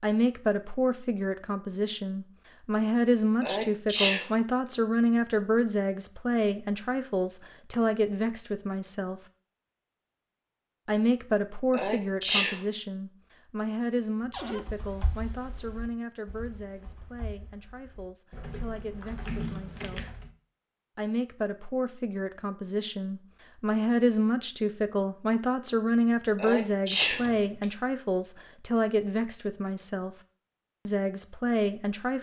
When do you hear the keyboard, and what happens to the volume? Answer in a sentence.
You can hear the keyboard from 14.3 to 20.3 s, getting quieter then louder.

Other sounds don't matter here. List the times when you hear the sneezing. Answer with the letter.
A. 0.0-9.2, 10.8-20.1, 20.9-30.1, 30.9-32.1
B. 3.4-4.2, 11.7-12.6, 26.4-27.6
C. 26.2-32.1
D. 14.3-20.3
B.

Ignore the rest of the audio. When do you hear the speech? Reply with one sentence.
You can hear the speech from 0.0 to 9.2 s, from 10.8 to 20.1 s, from 20.9 to 30.1 s and from 30.9 to 32.1 s.